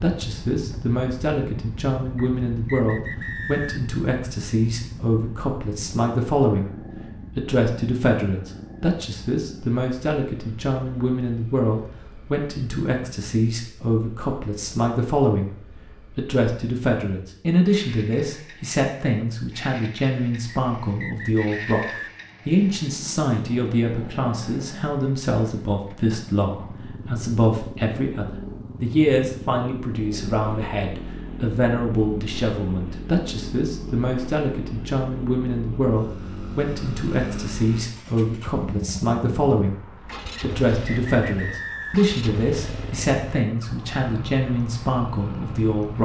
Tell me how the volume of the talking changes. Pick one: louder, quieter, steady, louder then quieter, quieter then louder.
steady.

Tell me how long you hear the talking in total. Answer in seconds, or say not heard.
44 s.